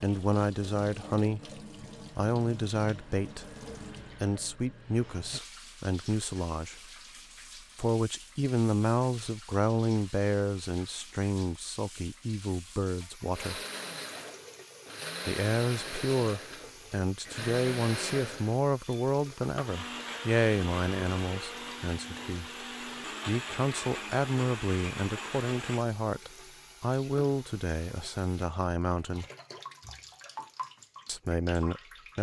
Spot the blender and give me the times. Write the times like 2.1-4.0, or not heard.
13.3-25.9.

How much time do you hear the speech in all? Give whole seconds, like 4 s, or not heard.
26 s.